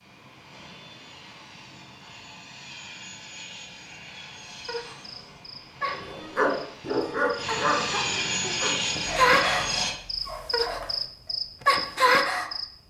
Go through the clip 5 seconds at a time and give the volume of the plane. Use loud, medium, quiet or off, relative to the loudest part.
quiet, loud, off.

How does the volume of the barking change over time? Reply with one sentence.
The loudness of the barking goes down.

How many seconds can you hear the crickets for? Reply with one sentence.
You can hear the crickets for 8 seconds altogether.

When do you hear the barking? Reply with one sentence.
The barking can be heard from 5.9 to 11.3 s.